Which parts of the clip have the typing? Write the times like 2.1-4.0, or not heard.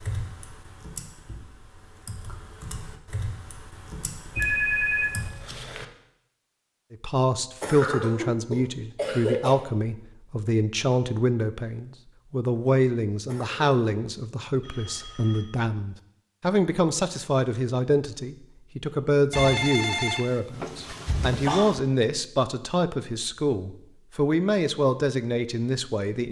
0.0-5.3.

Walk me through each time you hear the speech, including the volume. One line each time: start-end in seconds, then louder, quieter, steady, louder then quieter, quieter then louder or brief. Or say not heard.
6.9-26.2 steady.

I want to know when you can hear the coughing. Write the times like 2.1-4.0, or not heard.
7.6-9.6, 13.2-13.8.